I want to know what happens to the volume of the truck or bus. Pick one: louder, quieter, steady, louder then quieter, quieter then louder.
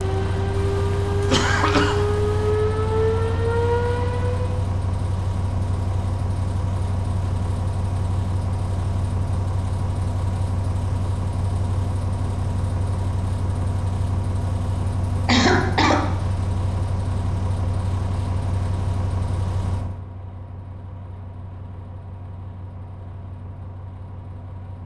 quieter.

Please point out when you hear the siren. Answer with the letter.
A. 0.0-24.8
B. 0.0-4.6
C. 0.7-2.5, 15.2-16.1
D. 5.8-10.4
B.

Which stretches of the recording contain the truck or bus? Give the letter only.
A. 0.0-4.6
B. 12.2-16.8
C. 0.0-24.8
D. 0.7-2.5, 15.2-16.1
C.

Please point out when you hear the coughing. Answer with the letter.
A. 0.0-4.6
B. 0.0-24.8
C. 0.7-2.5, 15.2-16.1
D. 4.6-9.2
C.